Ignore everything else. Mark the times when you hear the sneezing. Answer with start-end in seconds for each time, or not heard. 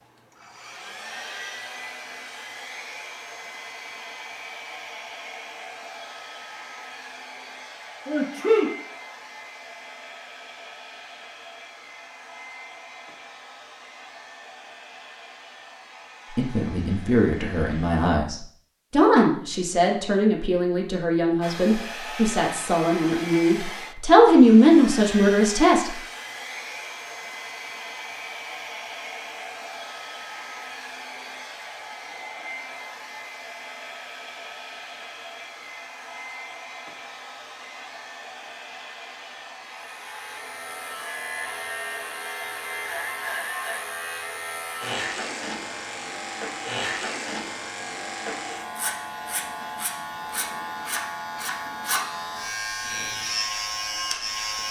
8.1-8.7.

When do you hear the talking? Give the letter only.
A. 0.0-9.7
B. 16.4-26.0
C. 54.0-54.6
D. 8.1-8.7
B.